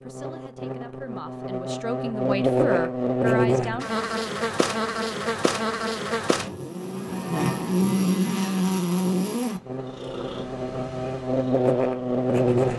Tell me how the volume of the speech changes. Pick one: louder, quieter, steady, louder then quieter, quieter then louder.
louder.